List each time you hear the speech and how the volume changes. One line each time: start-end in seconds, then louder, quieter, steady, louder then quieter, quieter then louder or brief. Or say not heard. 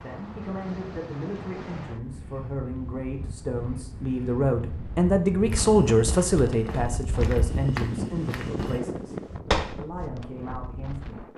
0.0-11.3 louder then quieter.